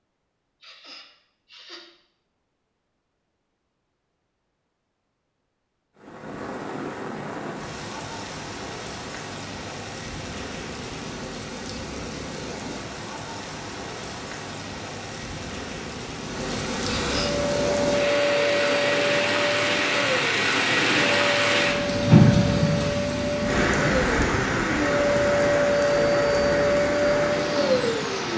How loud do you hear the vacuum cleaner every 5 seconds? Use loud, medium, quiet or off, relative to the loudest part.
off, off, off, loud, medium, loud.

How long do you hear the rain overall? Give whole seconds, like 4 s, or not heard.
22 s.